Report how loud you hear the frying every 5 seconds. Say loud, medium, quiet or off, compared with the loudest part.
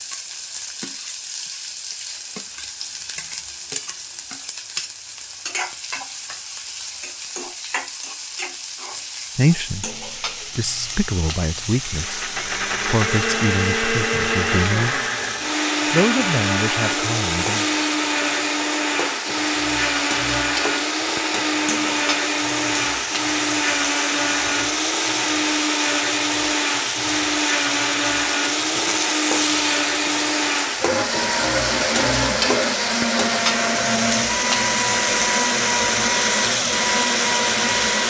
medium, medium, medium, medium, medium, loud, loud, loud.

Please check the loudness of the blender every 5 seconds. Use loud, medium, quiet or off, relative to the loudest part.
off, off, loud, loud, loud, loud, loud, loud.